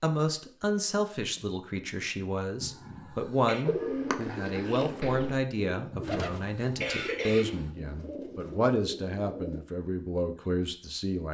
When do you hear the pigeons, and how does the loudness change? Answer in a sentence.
The pigeons can be heard from 3.6 to 9.7 s, getting quieter.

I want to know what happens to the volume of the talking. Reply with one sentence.
The loudness of the talking stays about the same.